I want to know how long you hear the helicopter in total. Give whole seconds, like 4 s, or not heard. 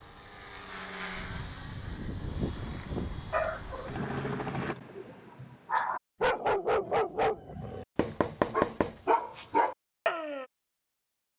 5 s.